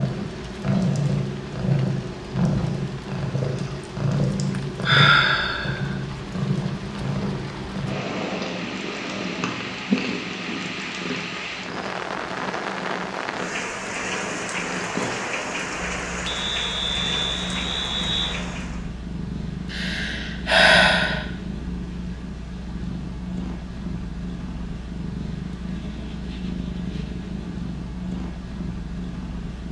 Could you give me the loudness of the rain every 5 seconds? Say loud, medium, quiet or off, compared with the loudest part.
medium, medium, loud, loud, off, off.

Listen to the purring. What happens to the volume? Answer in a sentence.
The volume of the purring goes down.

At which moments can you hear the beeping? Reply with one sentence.
You can hear the beeping from 16.2 to 18.3 s.